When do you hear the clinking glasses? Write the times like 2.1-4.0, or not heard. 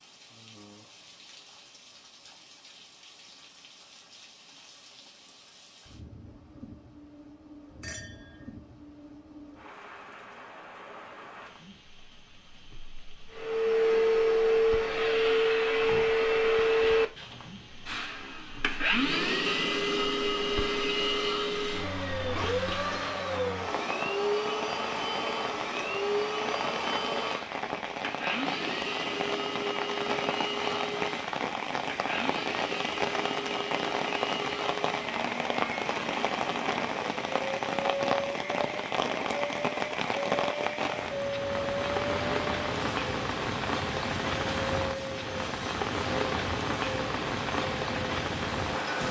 7.8-8.5.